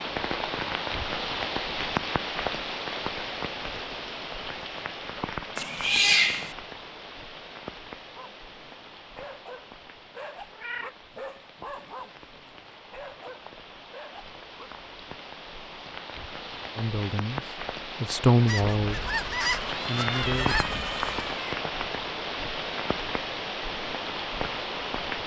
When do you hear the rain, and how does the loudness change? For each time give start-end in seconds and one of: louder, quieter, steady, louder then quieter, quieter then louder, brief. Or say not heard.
0.0-25.2 quieter then louder.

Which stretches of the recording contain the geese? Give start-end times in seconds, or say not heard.
18.4-21.0.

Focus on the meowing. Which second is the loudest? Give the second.
6 s.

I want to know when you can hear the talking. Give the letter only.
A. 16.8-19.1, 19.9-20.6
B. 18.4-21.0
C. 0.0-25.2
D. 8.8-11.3
A.